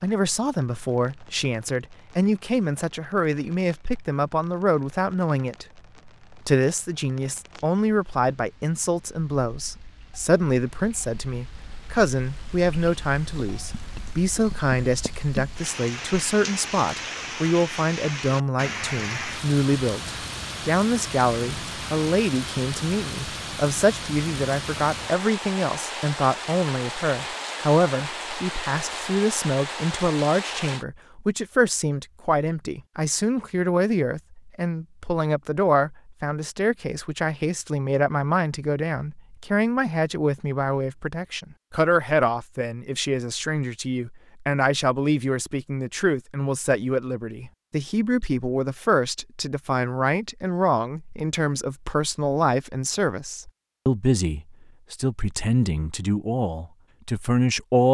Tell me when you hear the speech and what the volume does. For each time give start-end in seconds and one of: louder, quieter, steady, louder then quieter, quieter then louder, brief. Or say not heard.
0.0-57.8 steady.